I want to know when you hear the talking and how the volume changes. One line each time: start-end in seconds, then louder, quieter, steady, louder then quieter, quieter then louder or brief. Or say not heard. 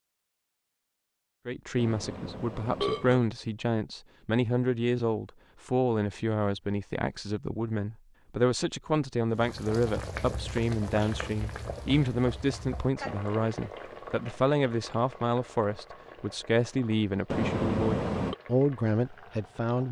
1.4-19.8 steady.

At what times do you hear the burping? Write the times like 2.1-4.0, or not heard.
1.8-3.2, 17.3-18.4.